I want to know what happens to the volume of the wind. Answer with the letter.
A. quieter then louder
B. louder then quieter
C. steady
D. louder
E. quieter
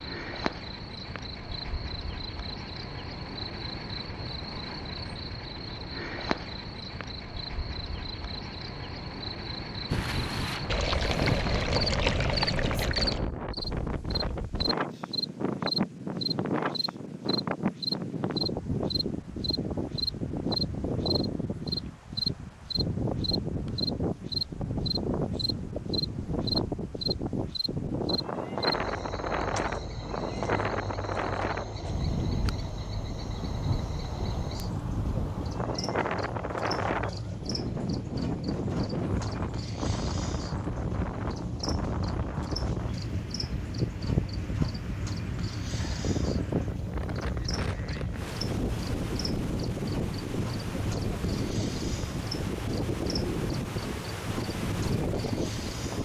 C.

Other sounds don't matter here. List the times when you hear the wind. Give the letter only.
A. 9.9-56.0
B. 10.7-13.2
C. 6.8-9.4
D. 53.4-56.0
A.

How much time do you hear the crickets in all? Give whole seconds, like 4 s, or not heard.
56 s.